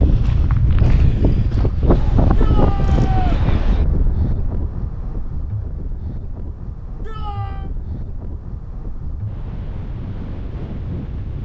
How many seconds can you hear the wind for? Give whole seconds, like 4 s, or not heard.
11 s.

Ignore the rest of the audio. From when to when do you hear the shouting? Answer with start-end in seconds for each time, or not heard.
2.4-3.4, 7.0-7.7.